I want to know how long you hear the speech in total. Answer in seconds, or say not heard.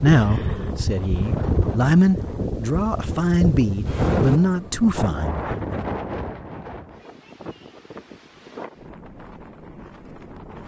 6 s.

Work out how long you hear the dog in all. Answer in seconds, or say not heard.
not heard.